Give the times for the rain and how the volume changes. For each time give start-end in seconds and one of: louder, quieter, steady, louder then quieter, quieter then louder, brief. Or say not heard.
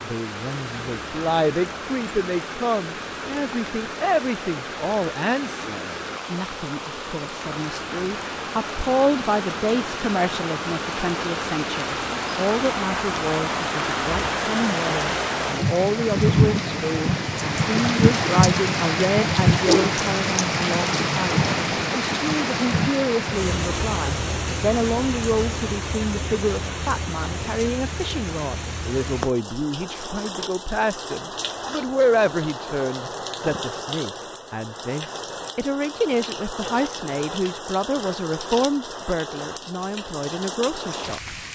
0.0-41.4 louder then quieter.